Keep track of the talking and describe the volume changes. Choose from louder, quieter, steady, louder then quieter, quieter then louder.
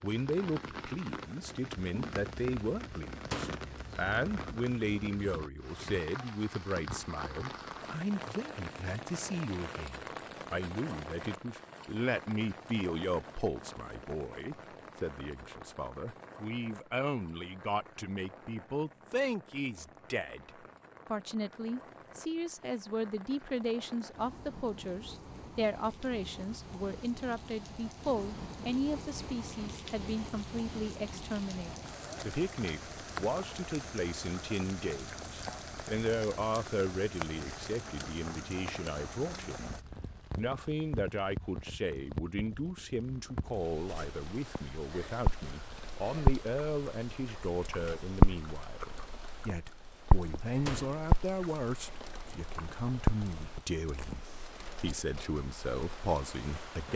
steady.